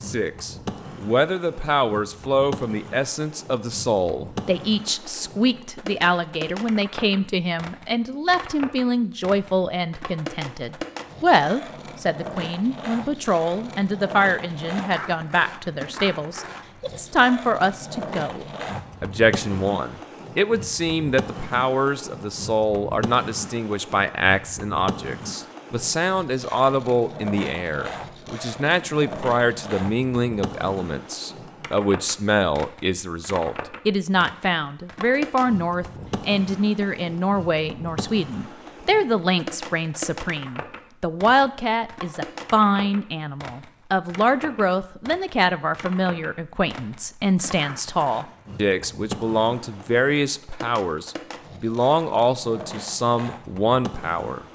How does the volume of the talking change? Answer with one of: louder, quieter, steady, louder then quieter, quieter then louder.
steady.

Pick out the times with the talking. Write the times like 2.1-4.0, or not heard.
0.0-54.5.